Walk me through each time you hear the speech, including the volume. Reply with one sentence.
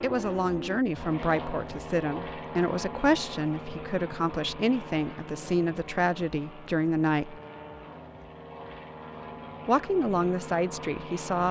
You can hear the speech from 0.0 to 7.4 s, at a steady volume; and briefly from 9.7 to 11.4 s.